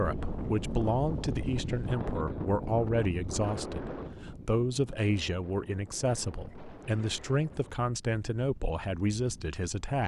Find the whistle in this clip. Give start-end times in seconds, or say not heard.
not heard.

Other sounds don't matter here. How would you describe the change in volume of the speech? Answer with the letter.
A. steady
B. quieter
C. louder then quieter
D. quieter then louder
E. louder
A.